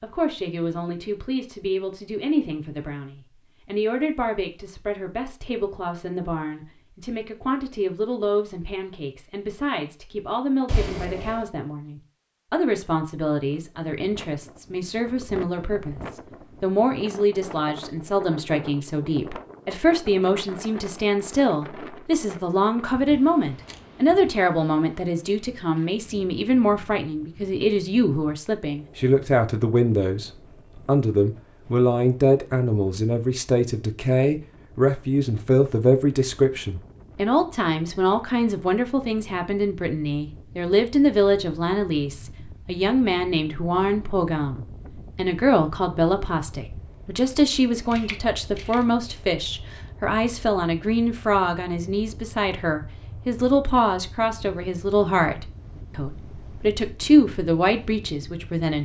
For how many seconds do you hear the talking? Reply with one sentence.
The talking can be heard for 59 seconds in total.